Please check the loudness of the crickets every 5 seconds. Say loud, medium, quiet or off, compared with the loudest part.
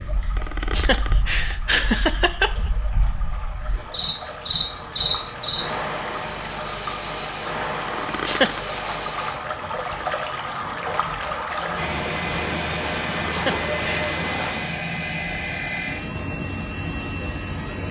medium, loud, medium, medium.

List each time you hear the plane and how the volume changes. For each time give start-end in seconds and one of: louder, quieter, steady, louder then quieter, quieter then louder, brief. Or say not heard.
11.8-17.8 steady.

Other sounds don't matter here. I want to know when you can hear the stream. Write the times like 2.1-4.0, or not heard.
0.0-14.8.